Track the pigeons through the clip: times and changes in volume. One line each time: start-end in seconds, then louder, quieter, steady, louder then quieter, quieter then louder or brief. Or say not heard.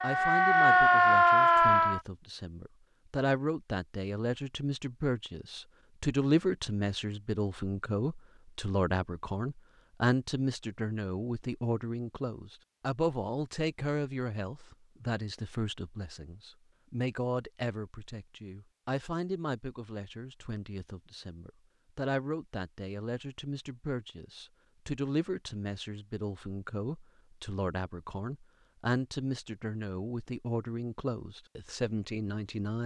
not heard.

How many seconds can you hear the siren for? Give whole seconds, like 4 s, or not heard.
2 s.